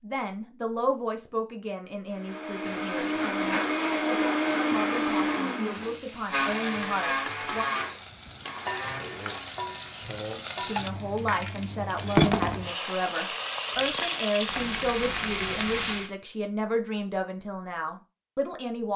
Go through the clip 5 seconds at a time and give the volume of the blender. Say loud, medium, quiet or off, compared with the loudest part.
loud, loud, off, off.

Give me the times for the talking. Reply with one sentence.
The talking can be heard from 0.0 to 7.7 s and from 10.7 to 18.9 s.